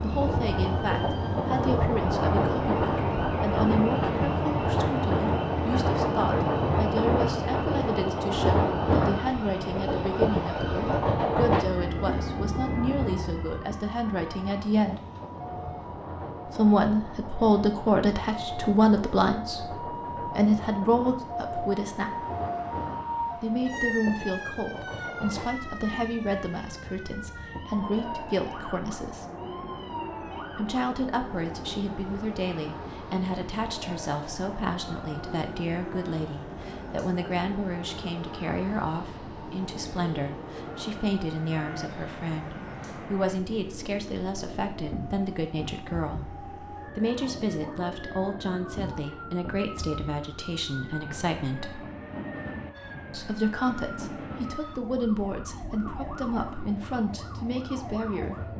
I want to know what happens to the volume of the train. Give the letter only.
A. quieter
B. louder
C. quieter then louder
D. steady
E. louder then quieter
A.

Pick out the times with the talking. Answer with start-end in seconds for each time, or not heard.
0.0-15.0, 16.4-22.2, 23.4-29.2, 30.6-51.9, 53.1-58.5.